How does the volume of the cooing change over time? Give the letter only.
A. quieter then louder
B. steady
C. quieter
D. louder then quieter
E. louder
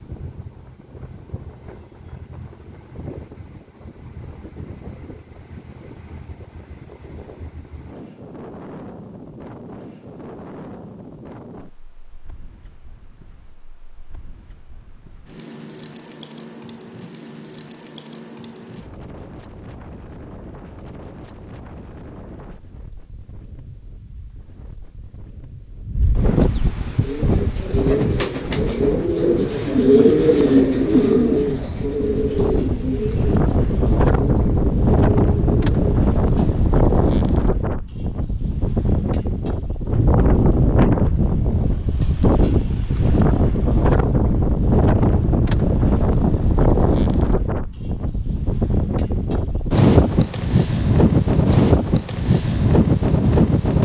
D.